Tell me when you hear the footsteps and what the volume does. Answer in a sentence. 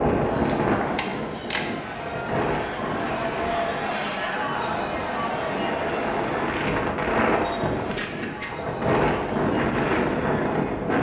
The footsteps can't be heard in this clip.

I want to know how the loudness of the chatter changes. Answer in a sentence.
The loudness of the chatter goes up, then down.